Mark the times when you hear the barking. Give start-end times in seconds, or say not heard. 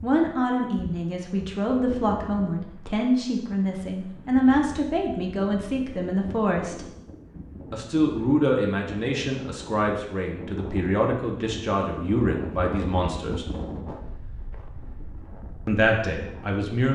not heard.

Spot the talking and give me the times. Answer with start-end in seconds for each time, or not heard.
0.0-6.8, 7.7-13.4, 15.7-16.9.